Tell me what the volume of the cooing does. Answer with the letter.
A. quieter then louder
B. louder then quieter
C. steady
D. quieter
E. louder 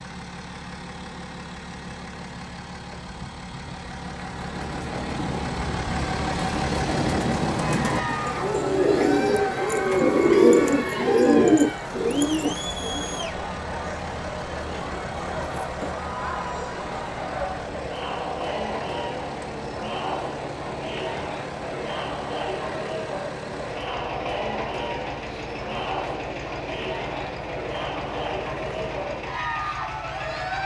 E.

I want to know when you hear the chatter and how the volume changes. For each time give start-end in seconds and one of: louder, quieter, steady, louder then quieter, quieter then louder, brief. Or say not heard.
7.6-30.6 steady.